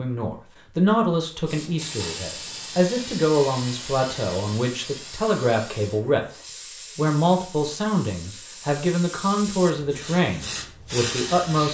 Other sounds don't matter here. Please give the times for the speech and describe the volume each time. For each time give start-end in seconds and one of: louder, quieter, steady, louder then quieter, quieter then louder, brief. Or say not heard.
0.0-11.6 steady.